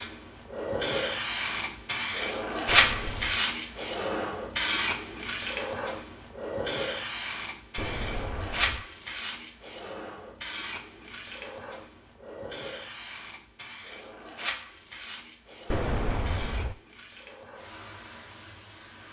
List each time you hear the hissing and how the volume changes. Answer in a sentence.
The hissing can be heard from 0.0 to 19.0 s, getting quieter.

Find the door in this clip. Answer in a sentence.
The door can be heard from 2.6 to 3.5 s, from 7.8 to 8.8 s and from 15.7 to 16.8 s.